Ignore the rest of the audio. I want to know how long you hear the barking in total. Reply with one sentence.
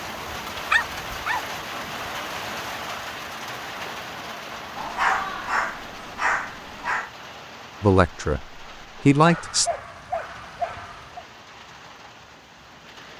The barking can be heard for 5 seconds in total.